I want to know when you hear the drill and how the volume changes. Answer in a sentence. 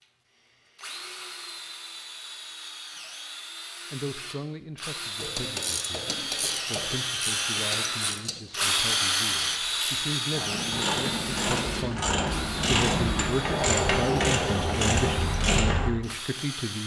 You can hear the drill from 0.0 to 16.8 s, getting louder then quieter.